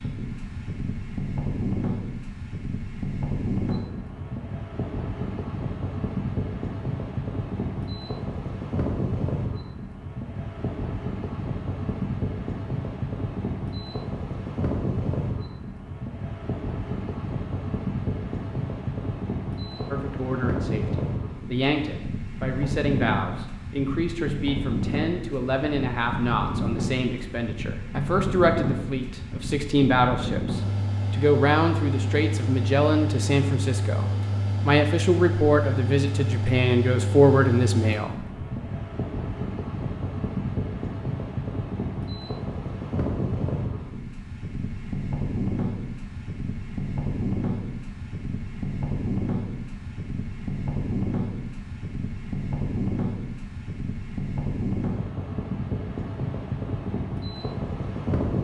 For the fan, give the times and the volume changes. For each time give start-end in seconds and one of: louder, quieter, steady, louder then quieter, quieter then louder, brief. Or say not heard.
0.0-58.3 steady.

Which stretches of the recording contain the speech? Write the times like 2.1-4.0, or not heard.
19.9-38.2.